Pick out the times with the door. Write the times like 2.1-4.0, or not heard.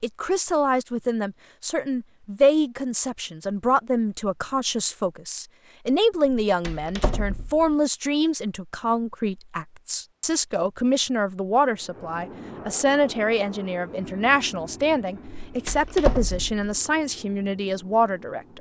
6.2-7.8, 15.4-16.6.